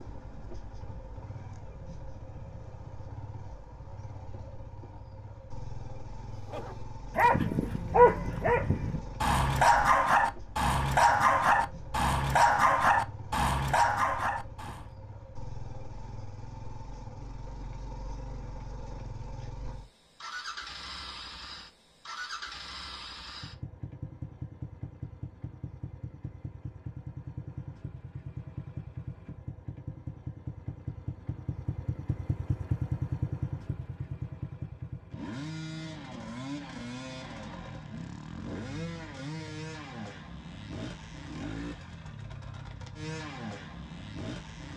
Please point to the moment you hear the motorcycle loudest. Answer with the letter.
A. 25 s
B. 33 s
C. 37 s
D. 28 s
B.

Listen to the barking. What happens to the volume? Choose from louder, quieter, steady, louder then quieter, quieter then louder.
steady.